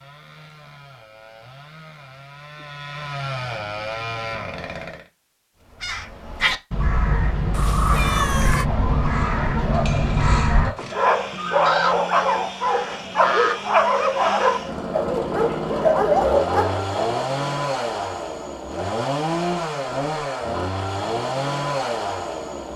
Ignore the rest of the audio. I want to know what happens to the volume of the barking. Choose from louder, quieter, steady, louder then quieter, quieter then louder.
louder.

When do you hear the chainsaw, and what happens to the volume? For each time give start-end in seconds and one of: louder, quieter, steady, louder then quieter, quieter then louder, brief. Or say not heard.
0.0-5.0 louder
9.1-22.7 louder.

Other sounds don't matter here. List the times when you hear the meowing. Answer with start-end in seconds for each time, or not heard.
7.5-8.7.